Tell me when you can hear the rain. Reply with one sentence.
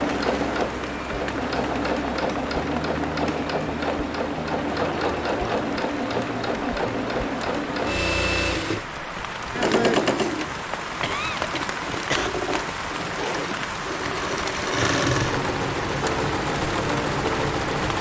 You can hear the rain from 0.0 to 17.9 s.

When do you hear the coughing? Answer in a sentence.
You can hear the coughing from 11.0 to 12.3 s.